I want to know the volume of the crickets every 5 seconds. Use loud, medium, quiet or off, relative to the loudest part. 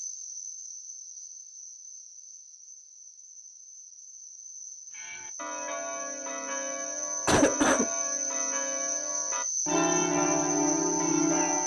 quiet, loud, loud.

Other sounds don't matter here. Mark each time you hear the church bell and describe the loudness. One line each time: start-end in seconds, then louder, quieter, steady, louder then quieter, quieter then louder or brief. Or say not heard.
4.9-11.6 louder.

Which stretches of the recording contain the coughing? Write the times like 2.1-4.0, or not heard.
7.2-7.9.